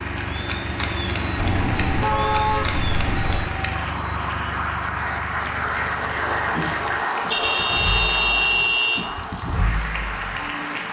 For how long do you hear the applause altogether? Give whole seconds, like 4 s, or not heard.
11 s.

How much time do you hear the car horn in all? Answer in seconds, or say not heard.
4 s.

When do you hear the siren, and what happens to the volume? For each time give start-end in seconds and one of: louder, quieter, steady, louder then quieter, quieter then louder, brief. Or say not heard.
not heard.